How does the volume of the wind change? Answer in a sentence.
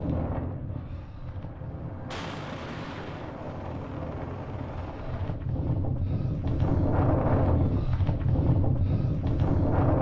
The volume of the wind goes up.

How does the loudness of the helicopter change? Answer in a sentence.
The loudness of the helicopter goes up.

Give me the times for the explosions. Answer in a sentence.
You can hear the explosions from 2.1 to 3.4 s.